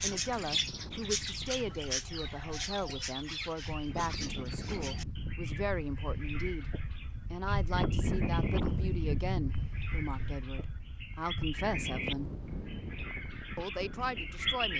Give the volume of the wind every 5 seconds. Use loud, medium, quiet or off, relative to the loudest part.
medium, loud, medium.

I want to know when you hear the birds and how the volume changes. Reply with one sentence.
The birds can be heard from 0.0 to 14.7 s, getting quieter then louder.